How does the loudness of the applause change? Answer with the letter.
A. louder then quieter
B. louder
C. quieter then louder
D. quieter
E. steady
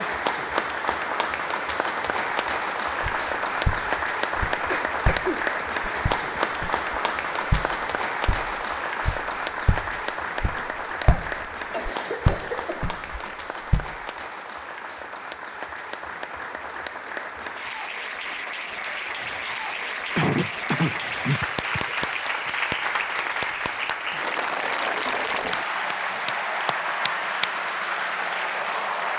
C.